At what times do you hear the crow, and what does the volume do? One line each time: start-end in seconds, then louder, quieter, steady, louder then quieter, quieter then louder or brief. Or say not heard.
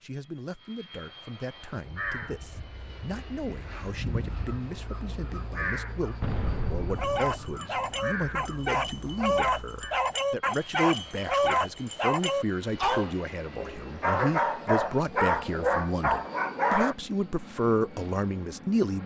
1.8-10.1 louder then quieter.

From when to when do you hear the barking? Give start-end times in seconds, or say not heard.
7.0-16.9.